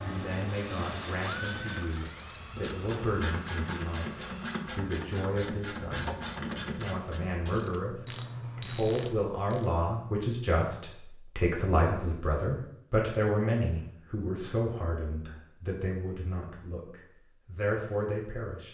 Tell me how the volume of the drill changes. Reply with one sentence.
The volume of the drill goes down.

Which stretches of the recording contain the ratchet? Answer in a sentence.
The ratchet can be heard from 0.0 to 9.7 s.